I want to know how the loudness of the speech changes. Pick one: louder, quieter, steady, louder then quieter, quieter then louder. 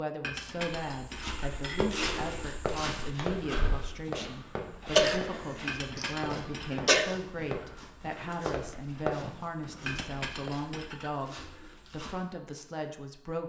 steady.